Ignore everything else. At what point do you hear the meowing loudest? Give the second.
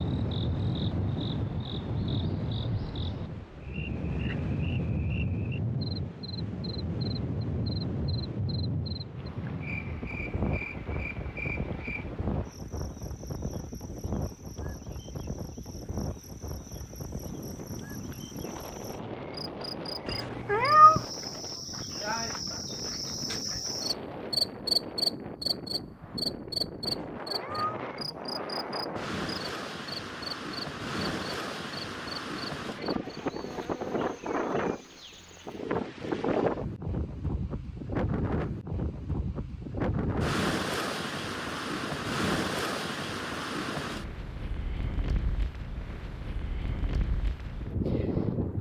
21 s.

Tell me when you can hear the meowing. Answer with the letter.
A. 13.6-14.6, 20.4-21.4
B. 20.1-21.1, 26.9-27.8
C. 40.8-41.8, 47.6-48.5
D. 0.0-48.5
B.